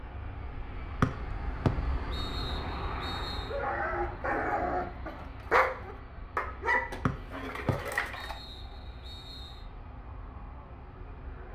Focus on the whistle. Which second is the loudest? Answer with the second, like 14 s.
1 s.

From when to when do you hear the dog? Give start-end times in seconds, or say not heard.
3.5-8.3.